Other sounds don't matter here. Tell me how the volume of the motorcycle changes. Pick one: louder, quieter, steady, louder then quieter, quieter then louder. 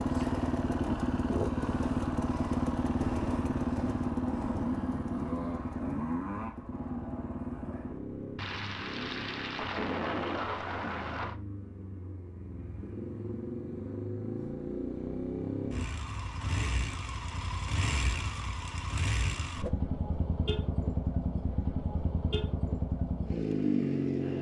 quieter then louder.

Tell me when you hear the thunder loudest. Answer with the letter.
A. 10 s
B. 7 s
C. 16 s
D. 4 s
A.